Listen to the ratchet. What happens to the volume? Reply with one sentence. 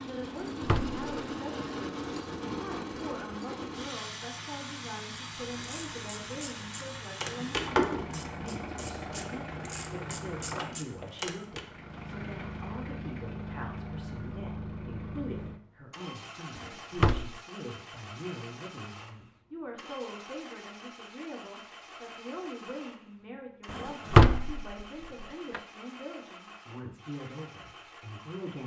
The volume of the ratchet goes up, then down.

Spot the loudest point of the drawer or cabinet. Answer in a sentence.
The loudest moment of the drawer or cabinet is at 24 seconds.